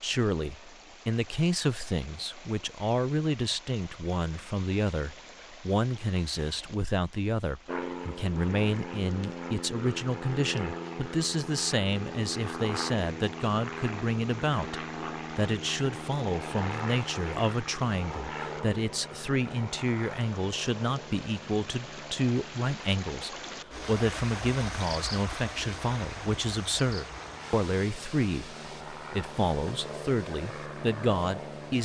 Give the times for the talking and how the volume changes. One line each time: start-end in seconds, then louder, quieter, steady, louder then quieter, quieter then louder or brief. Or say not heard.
0.0-31.7 steady.